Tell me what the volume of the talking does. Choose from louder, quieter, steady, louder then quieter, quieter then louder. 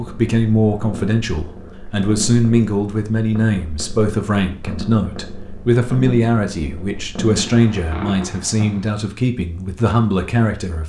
steady.